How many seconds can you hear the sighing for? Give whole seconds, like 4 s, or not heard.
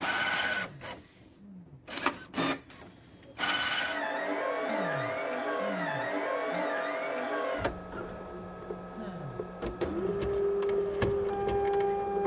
5 s.